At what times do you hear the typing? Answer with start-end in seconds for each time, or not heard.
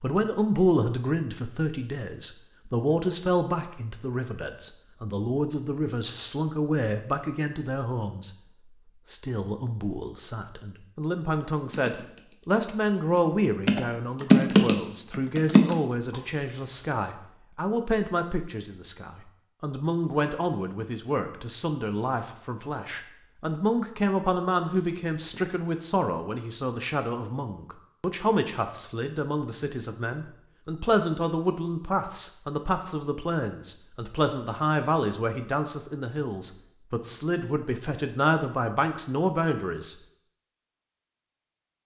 11.7-16.2.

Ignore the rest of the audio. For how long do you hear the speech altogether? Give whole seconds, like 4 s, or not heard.
39 s.